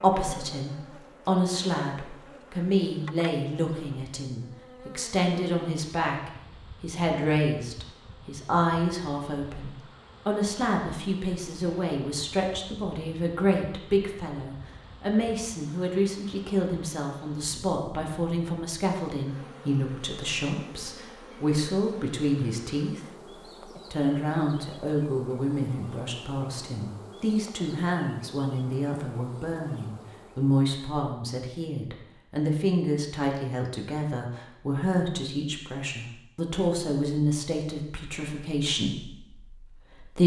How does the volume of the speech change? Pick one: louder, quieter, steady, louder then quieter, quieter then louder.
steady.